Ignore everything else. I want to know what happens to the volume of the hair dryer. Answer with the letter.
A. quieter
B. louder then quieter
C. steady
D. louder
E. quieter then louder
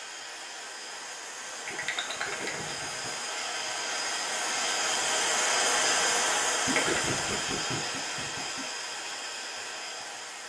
B.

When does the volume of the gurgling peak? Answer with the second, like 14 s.
7 s.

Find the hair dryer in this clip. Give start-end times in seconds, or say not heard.
0.0-10.4.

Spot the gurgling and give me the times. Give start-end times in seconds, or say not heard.
1.6-3.1, 6.7-8.6.